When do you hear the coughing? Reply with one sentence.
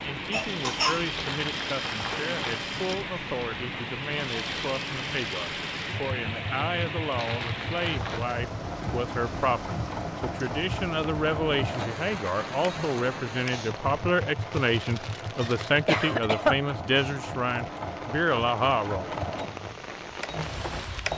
You can hear the coughing from 0.3 to 1.1 s and from 15.3 to 16.6 s.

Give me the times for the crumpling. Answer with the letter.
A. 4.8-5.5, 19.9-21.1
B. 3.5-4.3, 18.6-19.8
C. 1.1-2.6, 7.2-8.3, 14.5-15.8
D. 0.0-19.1
C.